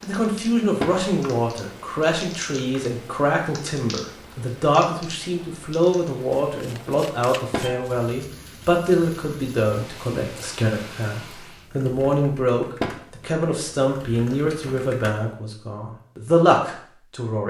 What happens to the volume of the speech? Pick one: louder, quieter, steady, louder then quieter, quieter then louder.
steady.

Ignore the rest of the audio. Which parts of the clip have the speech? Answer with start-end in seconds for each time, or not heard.
0.0-17.4.